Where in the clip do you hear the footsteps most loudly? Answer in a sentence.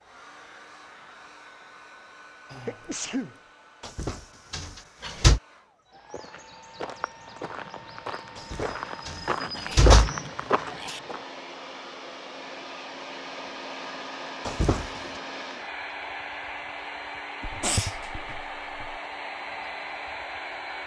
The loudest moment of the footsteps is at 10 seconds.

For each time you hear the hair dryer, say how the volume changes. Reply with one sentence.
You can hear the hair dryer from 0.0 to 20.8 s, getting louder.